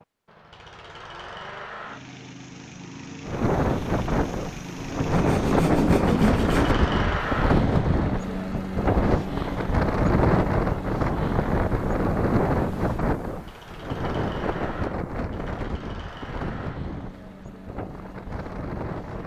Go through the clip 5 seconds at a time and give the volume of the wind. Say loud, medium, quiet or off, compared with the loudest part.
loud, loud, loud, medium.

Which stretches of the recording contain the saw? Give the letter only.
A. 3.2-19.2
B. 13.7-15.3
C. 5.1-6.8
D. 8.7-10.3
C.